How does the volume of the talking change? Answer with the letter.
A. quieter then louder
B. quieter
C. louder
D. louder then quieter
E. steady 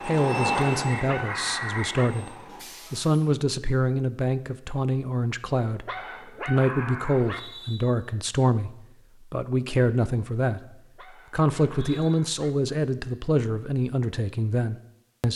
E.